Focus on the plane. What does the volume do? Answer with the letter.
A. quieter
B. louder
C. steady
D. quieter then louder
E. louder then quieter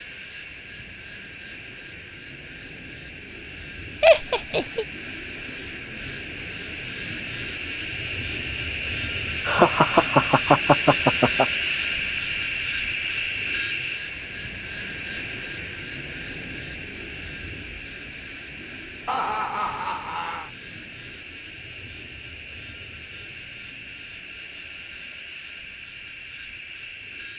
E.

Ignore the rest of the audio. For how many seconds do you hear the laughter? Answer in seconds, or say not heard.
4 s.